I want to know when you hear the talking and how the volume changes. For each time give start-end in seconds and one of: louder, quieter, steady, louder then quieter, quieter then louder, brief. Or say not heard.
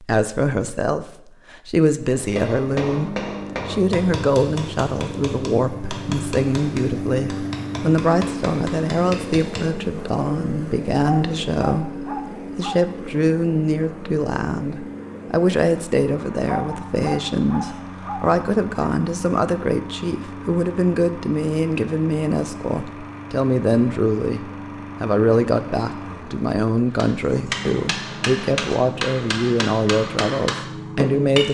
0.0-31.4 steady.